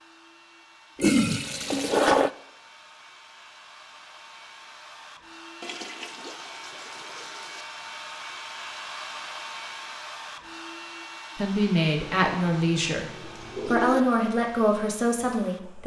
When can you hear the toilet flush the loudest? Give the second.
2 s.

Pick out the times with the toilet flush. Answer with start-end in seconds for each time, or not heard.
0.9-2.3, 5.6-7.7, 12.0-14.1.